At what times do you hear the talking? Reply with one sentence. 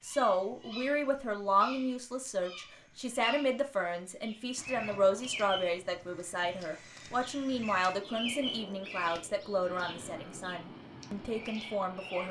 The talking can be heard from 0.0 to 12.2 s.